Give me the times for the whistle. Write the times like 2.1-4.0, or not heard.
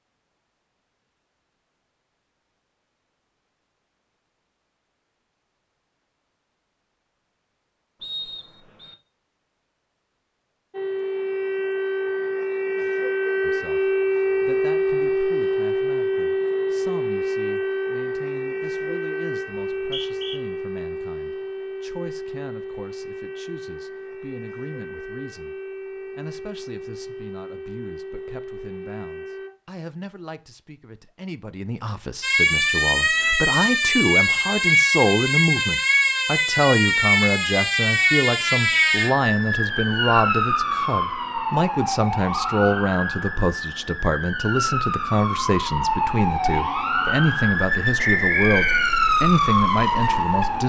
8.0-8.9, 19.6-20.4, 48.0-49.0.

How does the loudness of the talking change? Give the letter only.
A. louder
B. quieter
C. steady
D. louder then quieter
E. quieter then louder
A.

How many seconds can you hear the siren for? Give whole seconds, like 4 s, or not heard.
37 s.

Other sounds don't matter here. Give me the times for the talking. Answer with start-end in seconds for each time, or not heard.
13.4-25.6, 26.1-50.6.